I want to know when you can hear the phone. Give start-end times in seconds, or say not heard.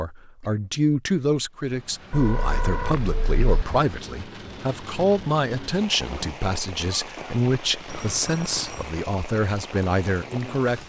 2.1-3.4, 7.8-8.9.